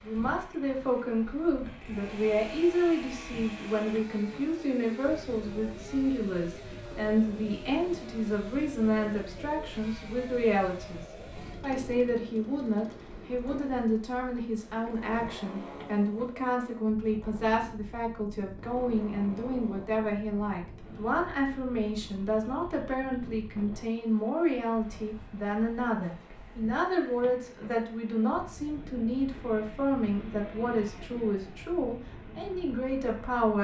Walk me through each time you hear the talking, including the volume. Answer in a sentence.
The talking can be heard from 0.0 to 11.0 s, at a steady volume; and from 11.6 to 33.5 s, at a steady volume.